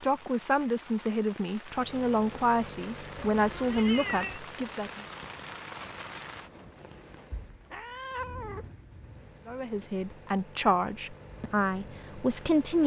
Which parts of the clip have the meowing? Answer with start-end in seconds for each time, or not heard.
3.1-4.4, 7.7-8.7.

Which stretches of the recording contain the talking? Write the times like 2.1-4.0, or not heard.
0.0-5.0, 9.4-12.8.